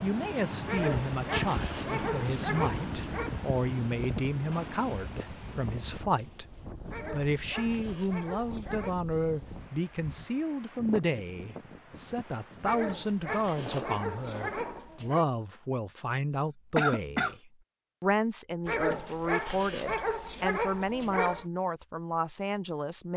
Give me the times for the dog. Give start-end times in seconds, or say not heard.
0.7-3.4, 6.8-8.9, 12.6-15.2, 18.6-21.4.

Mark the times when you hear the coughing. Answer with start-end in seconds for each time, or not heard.
16.3-17.4.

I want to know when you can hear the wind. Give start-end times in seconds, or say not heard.
0.0-14.9.